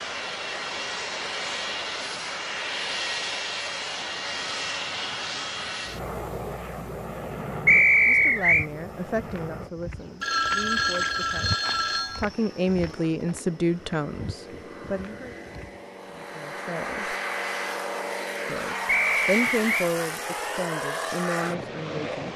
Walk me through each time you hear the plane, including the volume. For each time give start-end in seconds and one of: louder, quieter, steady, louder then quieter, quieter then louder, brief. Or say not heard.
0.0-22.3 quieter then louder.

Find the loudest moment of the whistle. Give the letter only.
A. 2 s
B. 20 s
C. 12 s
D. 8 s
D.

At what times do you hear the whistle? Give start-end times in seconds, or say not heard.
7.7-8.7, 18.9-19.9.